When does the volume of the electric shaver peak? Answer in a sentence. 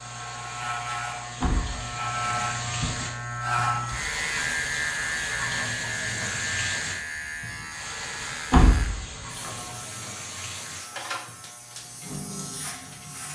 The loudest moment of the electric shaver is at 4 seconds.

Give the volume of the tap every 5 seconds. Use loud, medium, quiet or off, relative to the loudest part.
loud, loud, medium.